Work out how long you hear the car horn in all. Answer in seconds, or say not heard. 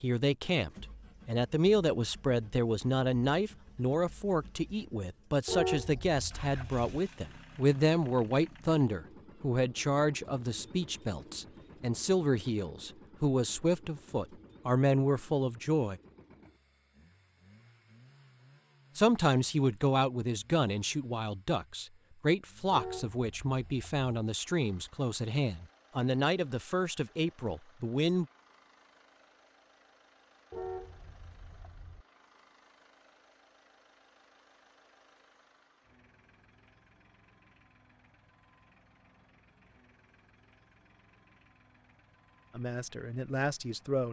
4 s.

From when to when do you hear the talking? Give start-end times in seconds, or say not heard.
0.0-16.0, 18.9-28.2, 42.5-44.0.